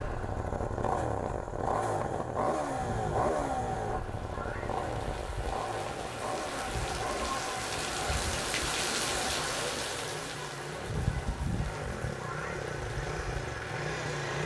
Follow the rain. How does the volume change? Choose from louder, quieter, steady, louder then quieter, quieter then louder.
louder then quieter.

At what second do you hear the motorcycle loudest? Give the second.
3 s.